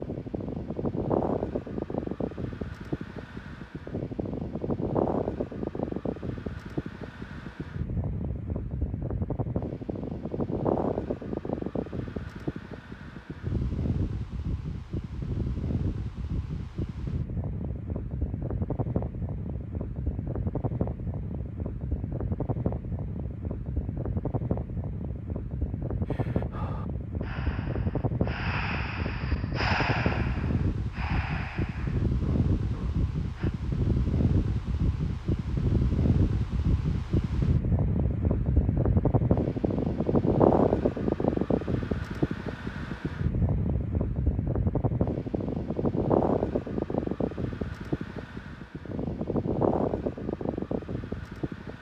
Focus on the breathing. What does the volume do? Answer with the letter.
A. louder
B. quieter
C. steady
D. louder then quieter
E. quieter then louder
D.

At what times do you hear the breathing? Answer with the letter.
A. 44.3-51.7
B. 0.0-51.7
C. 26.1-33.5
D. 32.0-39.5
C.